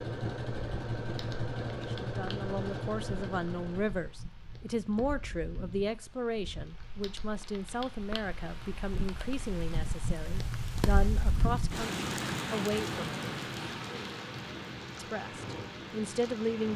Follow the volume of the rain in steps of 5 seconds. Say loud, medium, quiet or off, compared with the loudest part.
quiet, medium, loud, medium.